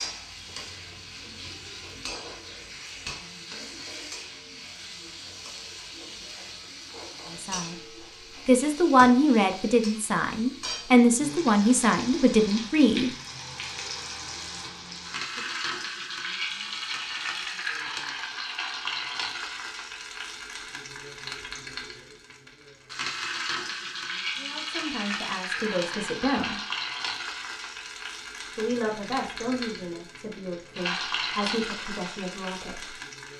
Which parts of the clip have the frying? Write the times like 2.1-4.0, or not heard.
0.0-33.3.